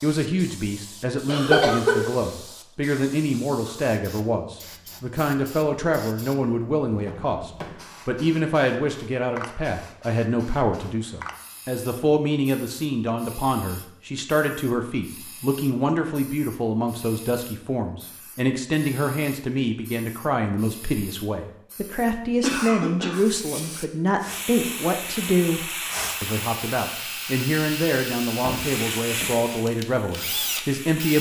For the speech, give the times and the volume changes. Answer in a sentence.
You can hear the speech from 0.0 to 31.1 s, at a steady volume.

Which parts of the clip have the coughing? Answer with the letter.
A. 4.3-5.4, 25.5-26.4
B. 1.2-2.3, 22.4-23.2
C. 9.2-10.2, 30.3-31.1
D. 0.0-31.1
B.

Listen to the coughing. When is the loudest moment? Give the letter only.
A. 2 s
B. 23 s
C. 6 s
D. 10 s
A.